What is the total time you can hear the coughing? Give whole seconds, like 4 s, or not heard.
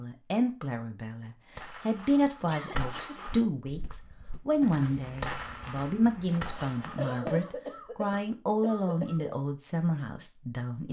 4 s.